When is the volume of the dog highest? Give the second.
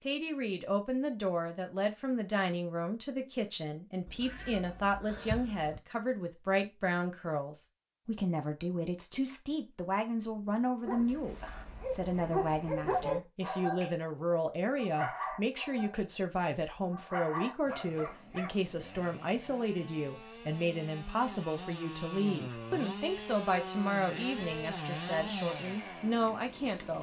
13 s.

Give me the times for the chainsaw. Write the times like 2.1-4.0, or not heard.
17.7-26.9.